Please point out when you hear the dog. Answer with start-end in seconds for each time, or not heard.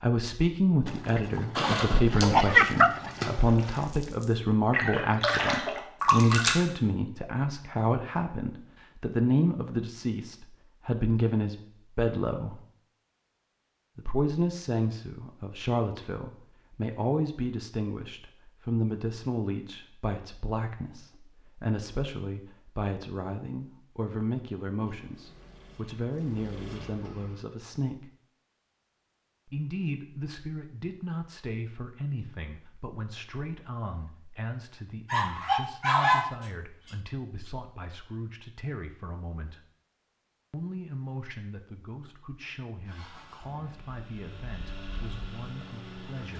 0.8-3.5, 35.1-37.0.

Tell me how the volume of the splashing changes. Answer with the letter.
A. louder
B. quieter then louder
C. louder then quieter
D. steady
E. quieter
B.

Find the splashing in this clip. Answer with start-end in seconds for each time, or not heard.
1.6-6.7.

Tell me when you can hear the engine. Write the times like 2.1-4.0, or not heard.
24.8-27.4, 42.9-46.3.